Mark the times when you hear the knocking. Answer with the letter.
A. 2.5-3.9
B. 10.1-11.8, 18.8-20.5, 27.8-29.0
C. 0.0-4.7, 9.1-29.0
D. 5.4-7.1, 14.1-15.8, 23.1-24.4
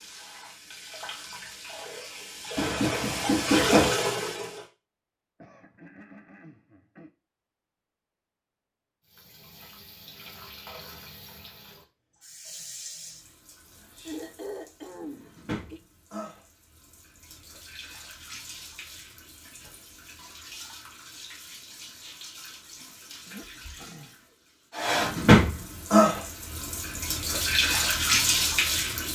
A.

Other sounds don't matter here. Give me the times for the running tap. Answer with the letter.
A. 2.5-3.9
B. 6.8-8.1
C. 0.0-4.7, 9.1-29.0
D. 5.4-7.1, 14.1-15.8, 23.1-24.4
C.